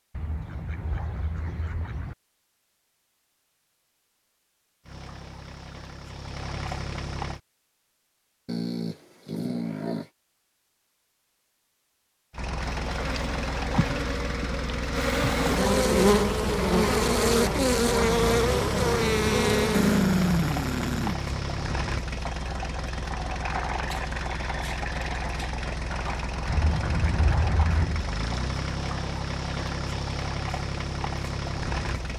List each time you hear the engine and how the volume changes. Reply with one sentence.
You can hear the engine briefly from 4.8 to 7.4 s; and from 12.3 to 32.1 s, at a steady volume.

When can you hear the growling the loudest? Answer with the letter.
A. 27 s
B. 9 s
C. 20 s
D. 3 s
C.